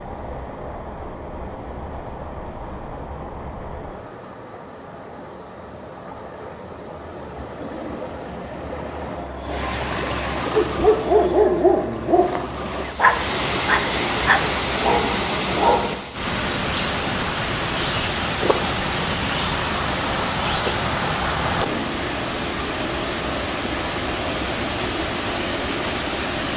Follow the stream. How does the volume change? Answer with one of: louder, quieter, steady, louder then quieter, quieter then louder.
louder.